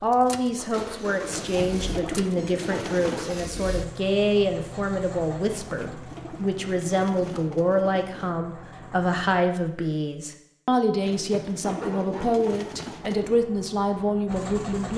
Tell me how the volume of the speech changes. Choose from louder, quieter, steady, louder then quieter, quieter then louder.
steady.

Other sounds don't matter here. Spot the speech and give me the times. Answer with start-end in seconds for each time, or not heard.
0.0-14.9.